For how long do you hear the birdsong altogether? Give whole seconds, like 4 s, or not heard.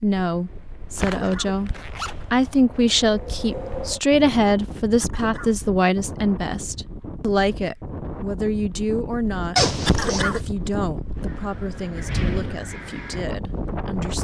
not heard.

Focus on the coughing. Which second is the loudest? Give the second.
10 s.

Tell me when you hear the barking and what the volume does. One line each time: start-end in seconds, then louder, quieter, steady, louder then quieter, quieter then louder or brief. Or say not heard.
not heard.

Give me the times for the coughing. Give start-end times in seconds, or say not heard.
1.0-2.2, 5.0-5.5, 9.8-10.4.